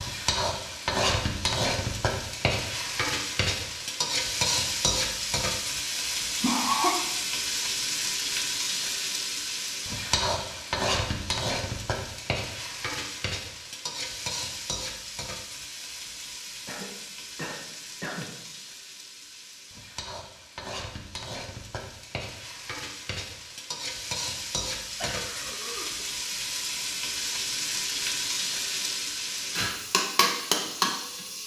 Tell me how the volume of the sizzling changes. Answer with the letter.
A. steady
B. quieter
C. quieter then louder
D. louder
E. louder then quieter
C.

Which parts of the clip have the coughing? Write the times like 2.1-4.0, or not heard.
6.4-7.0, 16.6-18.4, 25.0-26.1.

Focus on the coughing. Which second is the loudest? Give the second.
7 s.